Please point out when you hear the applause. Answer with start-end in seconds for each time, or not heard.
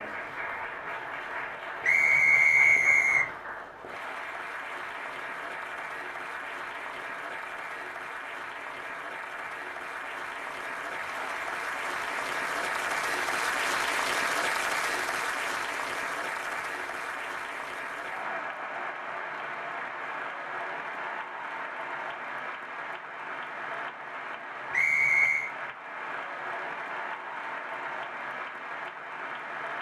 0.0-29.7.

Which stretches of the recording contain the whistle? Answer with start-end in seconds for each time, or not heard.
1.8-3.3, 24.7-25.5.